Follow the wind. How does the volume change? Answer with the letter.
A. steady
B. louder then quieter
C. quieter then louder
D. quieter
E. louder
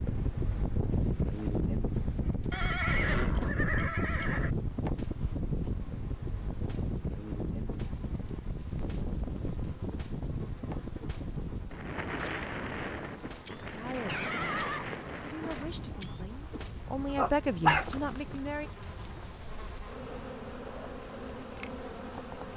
D.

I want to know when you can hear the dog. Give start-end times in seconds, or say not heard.
17.1-18.4.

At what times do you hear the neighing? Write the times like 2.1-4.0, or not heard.
2.5-4.5, 13.4-14.8.